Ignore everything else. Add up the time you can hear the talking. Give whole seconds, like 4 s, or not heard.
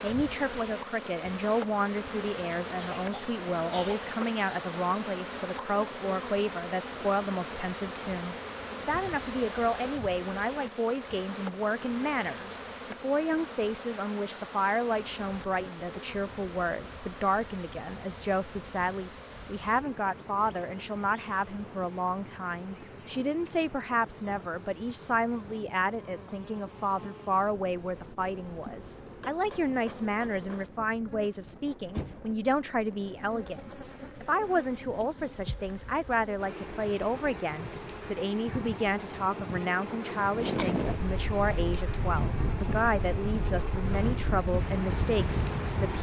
46 s.